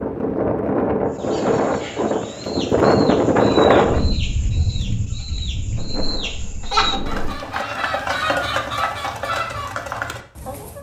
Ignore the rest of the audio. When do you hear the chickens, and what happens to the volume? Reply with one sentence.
You can hear the chickens from 1.1 to 10.7 s, getting louder.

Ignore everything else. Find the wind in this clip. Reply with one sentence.
You can hear the wind from 0.0 to 7.4 s.